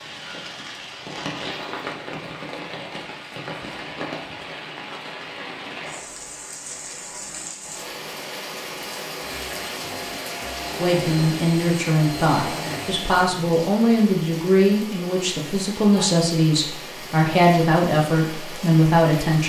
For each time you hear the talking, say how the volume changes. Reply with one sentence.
You can hear the talking from 10.8 to 19.4 s, at a steady volume.